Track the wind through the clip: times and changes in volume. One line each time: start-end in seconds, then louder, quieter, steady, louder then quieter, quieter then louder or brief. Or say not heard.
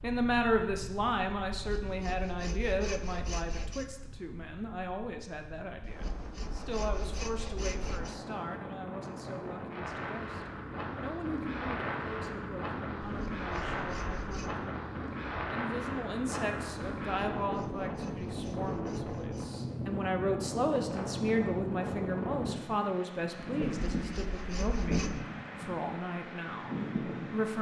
0.0-27.5 louder.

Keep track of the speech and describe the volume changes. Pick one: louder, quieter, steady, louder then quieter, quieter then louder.
quieter then louder.